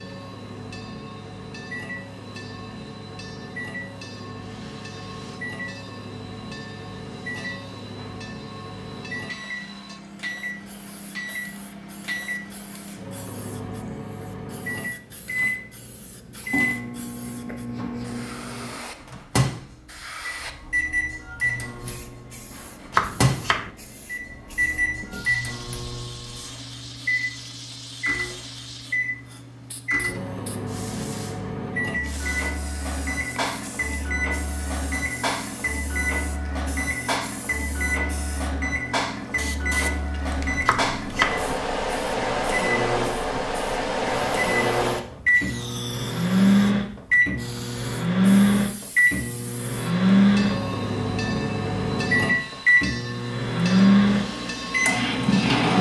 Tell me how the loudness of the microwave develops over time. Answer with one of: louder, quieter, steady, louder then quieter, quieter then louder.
louder.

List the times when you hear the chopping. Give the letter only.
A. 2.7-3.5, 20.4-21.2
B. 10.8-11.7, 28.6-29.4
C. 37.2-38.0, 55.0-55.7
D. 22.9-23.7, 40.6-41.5
D.